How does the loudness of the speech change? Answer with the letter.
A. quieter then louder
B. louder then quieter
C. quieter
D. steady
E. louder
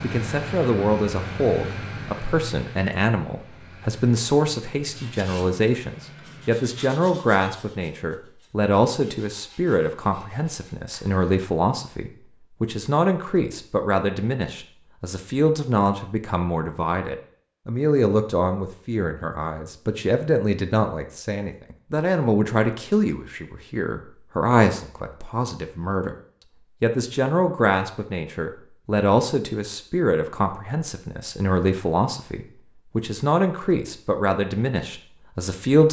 D.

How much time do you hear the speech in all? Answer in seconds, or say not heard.
35 s.